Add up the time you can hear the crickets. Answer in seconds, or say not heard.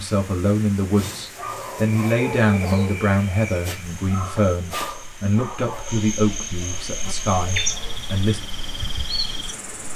8 s.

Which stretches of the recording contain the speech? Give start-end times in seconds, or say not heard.
0.0-8.4.